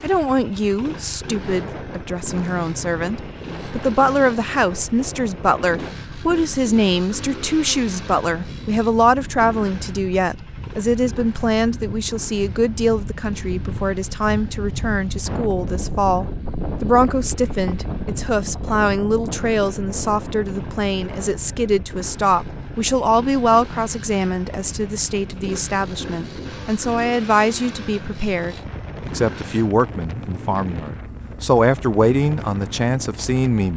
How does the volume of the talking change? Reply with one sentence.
The volume of the talking stays about the same.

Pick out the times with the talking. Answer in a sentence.
You can hear the talking from 0.0 to 33.7 s.